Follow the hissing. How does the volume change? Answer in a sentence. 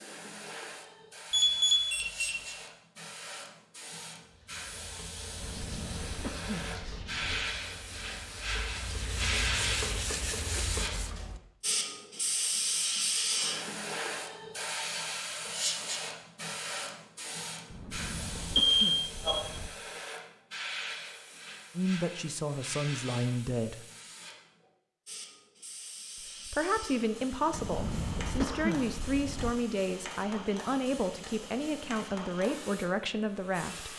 The volume of the hissing goes up, then down.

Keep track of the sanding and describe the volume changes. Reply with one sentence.
The loudness of the sanding goes up.